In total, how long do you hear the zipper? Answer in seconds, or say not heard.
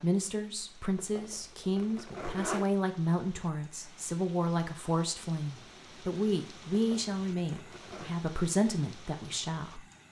3 s.